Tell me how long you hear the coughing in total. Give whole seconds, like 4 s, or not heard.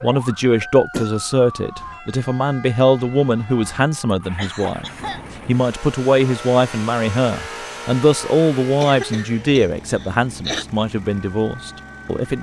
3 s.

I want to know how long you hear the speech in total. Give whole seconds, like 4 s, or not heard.
12 s.